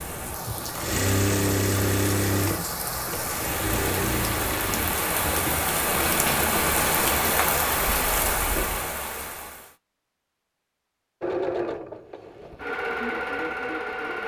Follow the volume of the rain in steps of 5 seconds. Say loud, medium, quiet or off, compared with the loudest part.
medium, loud, off.